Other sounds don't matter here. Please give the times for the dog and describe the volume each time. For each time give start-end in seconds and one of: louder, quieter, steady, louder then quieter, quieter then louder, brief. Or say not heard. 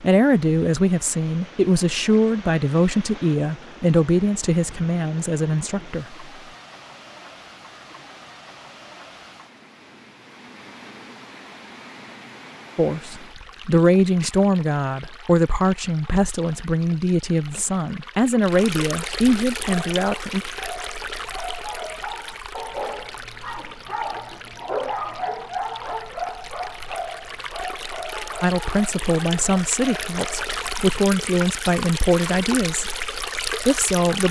19.7-30.7 louder then quieter.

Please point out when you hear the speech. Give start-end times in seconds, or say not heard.
0.0-6.2, 12.8-20.4, 28.4-32.9, 33.6-34.2.